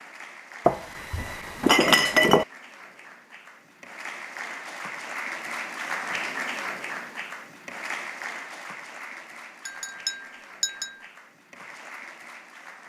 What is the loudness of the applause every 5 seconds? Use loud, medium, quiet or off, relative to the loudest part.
medium, loud, medium.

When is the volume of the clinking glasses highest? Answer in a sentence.
The loudest moment of the clinking glasses is at 2 seconds.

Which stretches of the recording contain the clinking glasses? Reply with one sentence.
You can hear the clinking glasses from 0.7 to 2.5 s and from 9.7 to 10.9 s.